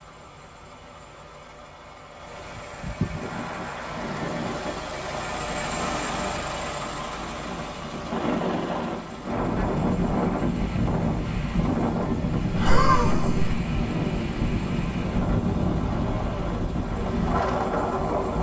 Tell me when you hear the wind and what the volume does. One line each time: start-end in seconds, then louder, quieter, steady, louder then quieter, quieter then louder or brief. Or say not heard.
3.1-18.3 louder.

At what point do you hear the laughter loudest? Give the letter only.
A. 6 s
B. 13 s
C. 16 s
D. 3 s
B.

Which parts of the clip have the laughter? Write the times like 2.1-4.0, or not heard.
2.5-3.2, 12.5-13.6.